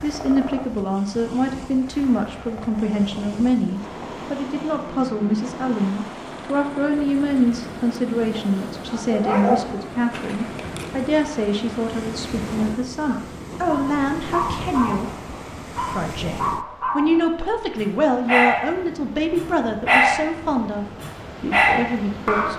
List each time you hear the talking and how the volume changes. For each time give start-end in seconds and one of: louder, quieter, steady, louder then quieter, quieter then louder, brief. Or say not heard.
0.0-22.5 steady.